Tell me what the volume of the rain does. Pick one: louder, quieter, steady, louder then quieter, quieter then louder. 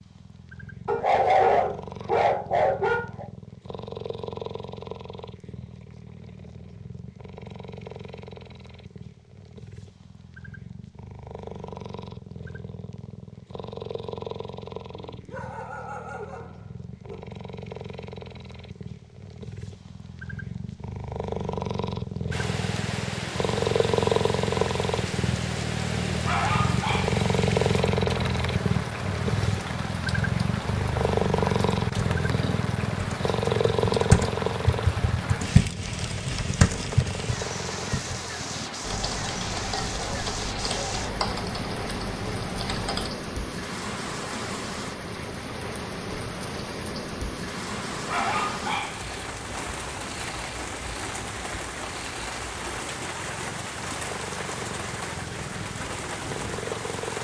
steady.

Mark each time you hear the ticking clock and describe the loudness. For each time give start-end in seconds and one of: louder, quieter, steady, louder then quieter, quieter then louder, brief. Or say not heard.
not heard.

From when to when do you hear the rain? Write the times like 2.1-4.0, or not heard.
22.3-57.1.